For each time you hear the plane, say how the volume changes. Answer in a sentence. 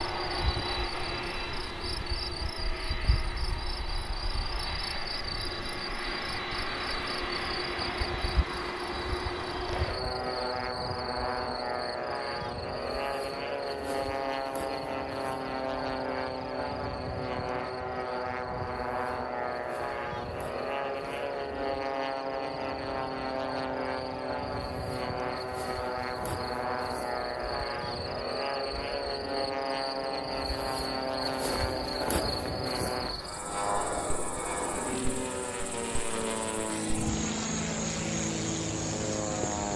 The plane can be heard from 0.0 to 39.7 s, at a steady volume.